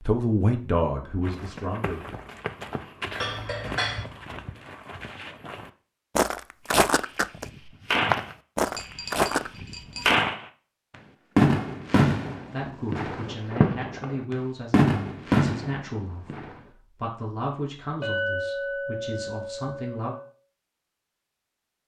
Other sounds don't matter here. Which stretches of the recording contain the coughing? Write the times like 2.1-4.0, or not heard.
not heard.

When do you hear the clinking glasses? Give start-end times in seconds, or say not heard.
3.2-4.0, 8.7-10.1, 18.0-20.3.